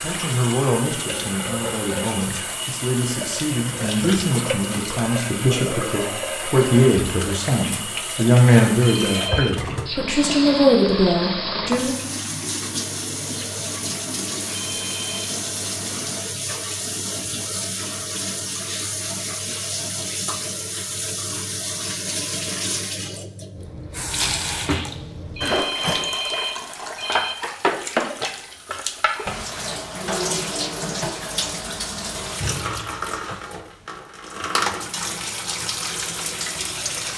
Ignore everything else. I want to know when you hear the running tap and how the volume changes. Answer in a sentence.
You can hear the running tap from 0.0 to 37.1 s, at a steady volume.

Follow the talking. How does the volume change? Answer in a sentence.
The loudness of the talking goes up.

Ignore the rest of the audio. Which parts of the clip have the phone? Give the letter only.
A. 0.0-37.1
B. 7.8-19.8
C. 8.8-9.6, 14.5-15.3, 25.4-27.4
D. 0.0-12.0
C.